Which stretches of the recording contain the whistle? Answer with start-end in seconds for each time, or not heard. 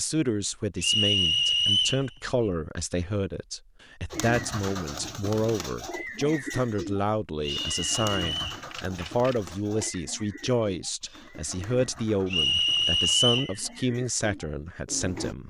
0.8-2.0, 7.4-8.6, 12.2-13.6.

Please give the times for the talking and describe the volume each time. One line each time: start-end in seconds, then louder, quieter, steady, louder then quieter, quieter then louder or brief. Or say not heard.
0.0-15.4 steady.